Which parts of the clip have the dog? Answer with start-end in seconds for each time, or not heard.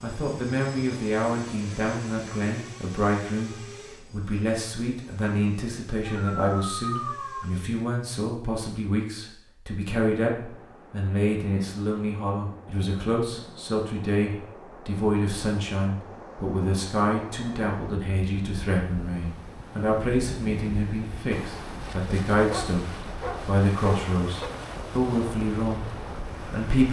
6.0-7.5, 22.5-24.5.